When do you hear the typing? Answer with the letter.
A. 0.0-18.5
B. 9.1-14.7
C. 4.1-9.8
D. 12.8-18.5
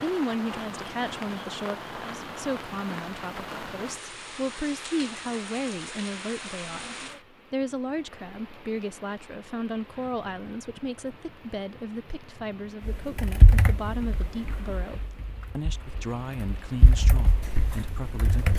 D.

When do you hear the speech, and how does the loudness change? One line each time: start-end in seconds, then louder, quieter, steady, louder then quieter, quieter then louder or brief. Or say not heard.
0.0-18.5 steady.